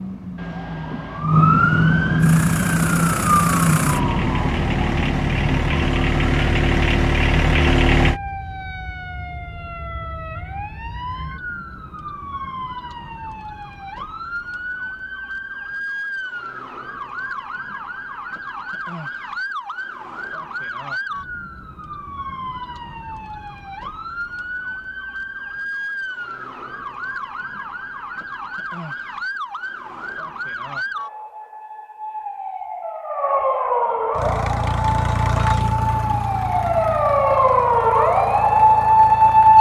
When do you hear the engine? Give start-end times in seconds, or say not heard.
2.2-8.2, 34.1-39.5.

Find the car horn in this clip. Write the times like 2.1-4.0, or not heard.
0.3-1.3.